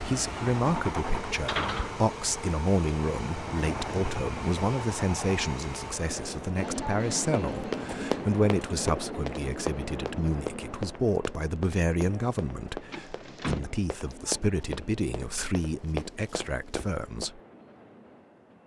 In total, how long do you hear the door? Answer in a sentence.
The door can be heard for 3 seconds in total.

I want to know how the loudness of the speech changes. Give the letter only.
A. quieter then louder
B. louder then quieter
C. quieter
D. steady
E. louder
D.